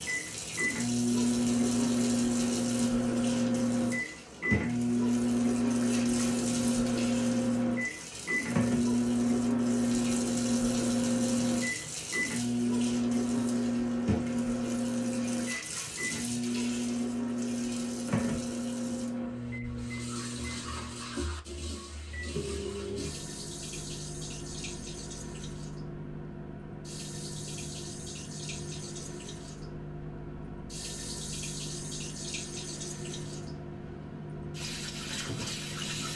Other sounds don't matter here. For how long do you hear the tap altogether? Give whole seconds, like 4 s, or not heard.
36 s.